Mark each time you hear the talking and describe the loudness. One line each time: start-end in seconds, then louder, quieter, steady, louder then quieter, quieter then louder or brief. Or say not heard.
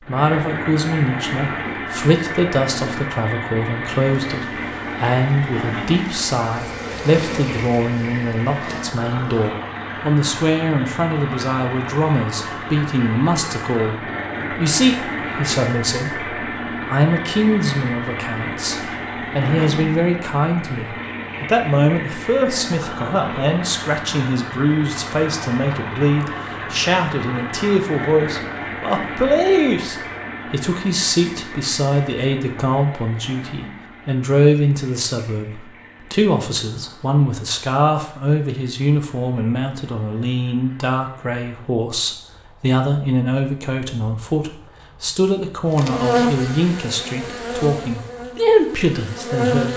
0.0-49.7 steady.